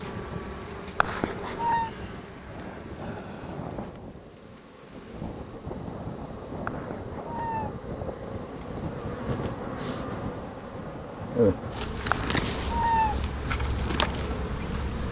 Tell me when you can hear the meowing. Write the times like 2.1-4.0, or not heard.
0.9-1.9, 6.7-7.8, 12.1-13.2.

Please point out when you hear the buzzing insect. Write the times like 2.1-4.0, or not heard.
0.0-15.0.